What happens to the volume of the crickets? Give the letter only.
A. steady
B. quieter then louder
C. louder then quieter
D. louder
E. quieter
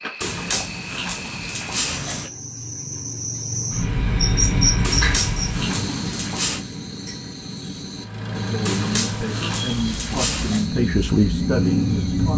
C.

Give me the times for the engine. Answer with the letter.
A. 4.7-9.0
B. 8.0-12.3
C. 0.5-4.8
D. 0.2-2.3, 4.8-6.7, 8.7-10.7
B.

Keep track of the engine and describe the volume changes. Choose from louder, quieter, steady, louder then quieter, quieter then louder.
quieter then louder.